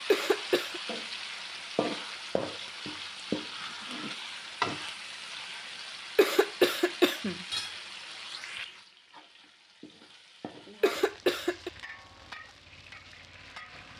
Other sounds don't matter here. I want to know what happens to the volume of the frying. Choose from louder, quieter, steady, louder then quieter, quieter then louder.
quieter.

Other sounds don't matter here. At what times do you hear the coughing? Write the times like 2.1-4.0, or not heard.
0.1-0.8, 6.2-7.5, 10.8-11.7.